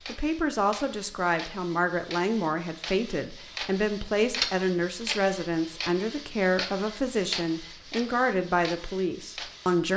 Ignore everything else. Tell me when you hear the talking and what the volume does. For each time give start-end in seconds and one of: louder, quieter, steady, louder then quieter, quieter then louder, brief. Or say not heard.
0.1-9.9 steady.